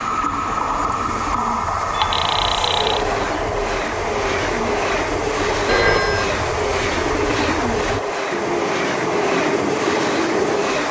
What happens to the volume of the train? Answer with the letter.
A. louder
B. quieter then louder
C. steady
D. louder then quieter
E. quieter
C.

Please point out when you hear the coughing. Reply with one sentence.
The coughing can't be heard in this clip.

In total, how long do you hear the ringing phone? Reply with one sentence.
The ringing phone can be heard for 2 seconds in total.